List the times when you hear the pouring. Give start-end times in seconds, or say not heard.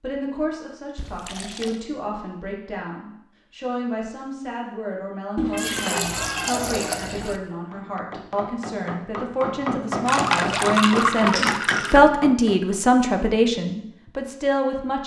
0.9-1.8, 5.3-7.4, 10.1-12.0.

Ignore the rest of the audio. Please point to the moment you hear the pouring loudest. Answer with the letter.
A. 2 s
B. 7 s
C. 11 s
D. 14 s
C.